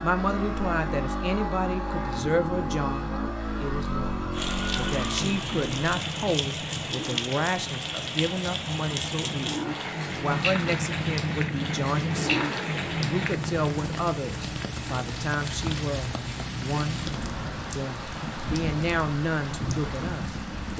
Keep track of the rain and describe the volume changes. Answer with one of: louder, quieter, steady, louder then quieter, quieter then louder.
steady.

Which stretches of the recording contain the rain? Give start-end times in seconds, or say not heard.
4.3-20.7.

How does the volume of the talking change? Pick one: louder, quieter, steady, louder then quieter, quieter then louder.
steady.